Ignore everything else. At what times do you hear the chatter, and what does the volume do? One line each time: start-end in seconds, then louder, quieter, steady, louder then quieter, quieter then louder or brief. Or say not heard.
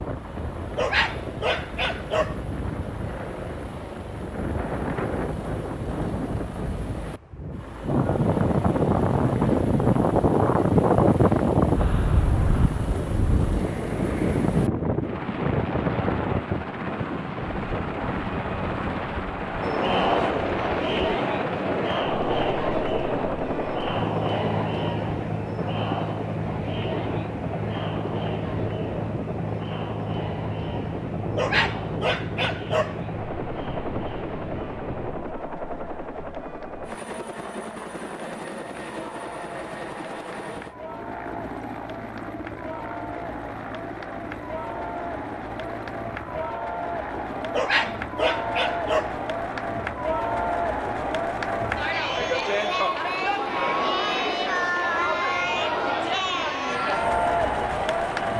19.6-58.3 quieter then louder.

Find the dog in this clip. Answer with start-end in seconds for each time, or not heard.
0.8-2.4, 31.4-33.0, 47.5-49.2.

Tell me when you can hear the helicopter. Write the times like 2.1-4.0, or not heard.
0.0-58.3.